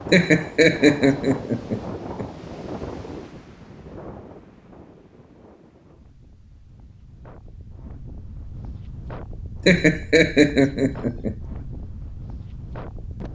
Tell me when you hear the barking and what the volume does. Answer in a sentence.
The barking can't be heard in this clip.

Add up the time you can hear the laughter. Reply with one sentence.
The laughter can be heard for 4 seconds in total.